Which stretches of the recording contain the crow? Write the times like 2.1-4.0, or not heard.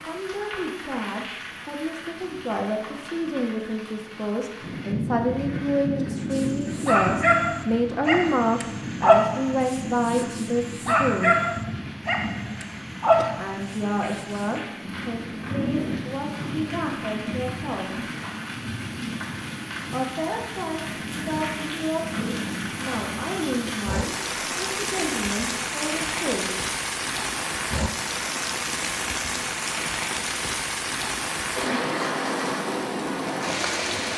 not heard.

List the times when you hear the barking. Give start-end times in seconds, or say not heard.
6.3-14.6.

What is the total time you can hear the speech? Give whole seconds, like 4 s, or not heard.
23 s.